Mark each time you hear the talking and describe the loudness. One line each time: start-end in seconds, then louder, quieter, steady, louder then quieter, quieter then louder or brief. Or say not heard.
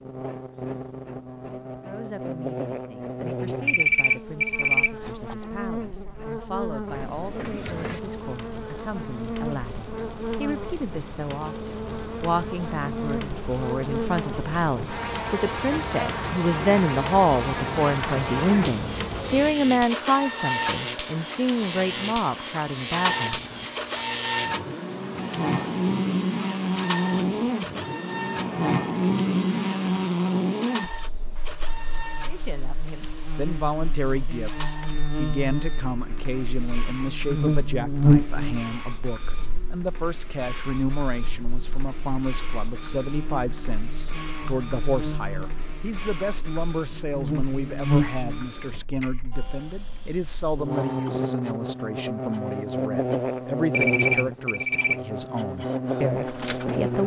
1.8-23.4 louder
32.2-57.0 steady.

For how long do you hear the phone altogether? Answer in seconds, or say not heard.
3 s.